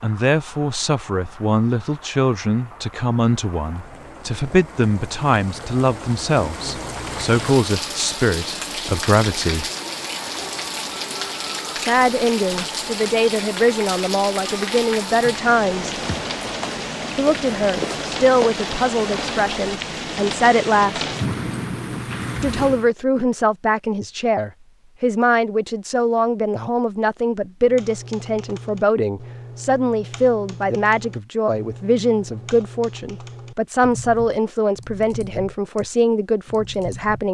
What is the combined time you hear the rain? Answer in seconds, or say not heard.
23 s.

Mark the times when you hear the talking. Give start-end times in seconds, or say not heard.
0.0-9.7, 11.8-15.9, 17.1-21.1, 22.4-37.2.